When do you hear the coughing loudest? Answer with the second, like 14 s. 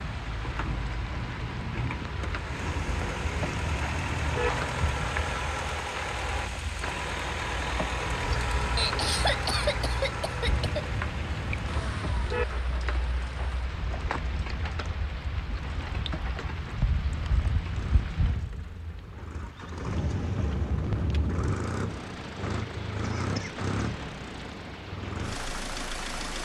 9 s.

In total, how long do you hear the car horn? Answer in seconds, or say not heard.
6 s.